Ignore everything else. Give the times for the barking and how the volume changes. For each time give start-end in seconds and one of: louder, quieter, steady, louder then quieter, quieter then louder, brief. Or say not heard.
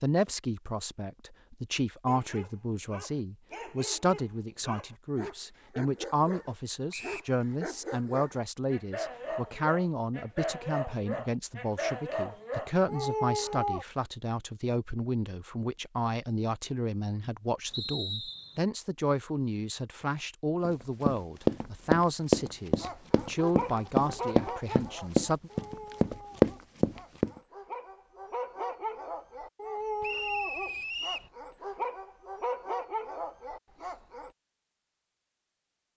2.0-13.8 louder
22.8-34.3 quieter then louder.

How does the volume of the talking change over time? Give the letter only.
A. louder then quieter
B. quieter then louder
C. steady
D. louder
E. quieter
C.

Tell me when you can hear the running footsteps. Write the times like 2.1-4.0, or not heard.
20.6-27.3.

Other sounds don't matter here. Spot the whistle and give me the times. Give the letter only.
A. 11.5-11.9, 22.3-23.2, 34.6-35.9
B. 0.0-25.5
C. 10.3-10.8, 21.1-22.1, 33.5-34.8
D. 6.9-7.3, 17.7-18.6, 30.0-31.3
D.